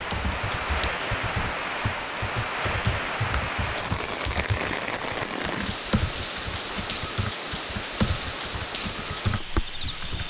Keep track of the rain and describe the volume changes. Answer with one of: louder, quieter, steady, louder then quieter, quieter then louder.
steady.